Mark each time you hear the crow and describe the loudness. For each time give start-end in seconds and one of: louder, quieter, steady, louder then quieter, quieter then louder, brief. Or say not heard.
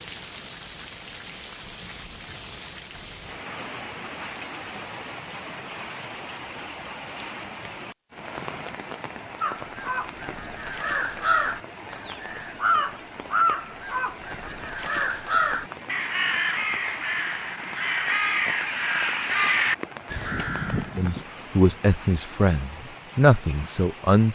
9.4-21.2 steady.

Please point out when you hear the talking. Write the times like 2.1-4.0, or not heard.
20.9-24.3.